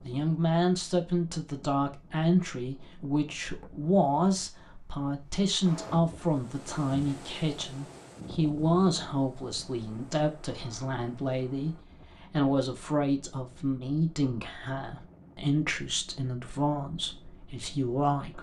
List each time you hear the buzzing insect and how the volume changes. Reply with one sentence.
You can't hear the buzzing insect here.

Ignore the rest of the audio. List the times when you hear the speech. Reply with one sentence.
You can hear the speech from 0.0 to 18.3 s.